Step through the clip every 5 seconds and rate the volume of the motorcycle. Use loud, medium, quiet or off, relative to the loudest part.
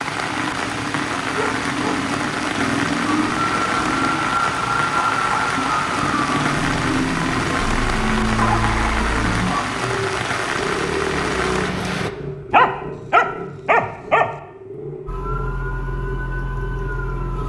loud, loud, loud, medium.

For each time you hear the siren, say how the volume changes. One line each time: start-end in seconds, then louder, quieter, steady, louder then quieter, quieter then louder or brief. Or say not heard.
3.0-9.7 steady
15.1-17.4 brief.